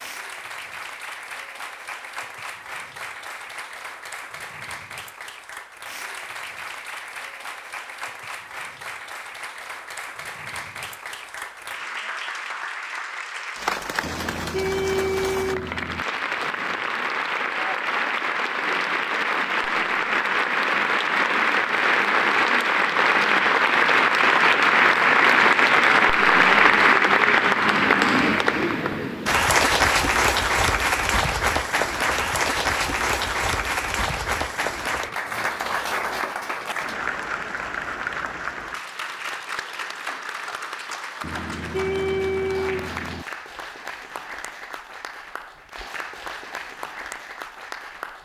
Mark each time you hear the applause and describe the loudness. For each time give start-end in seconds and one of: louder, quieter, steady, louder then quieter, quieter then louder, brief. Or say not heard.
0.0-48.2 louder then quieter.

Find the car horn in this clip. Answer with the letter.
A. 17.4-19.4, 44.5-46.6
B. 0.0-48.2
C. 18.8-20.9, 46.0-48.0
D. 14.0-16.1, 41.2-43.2
D.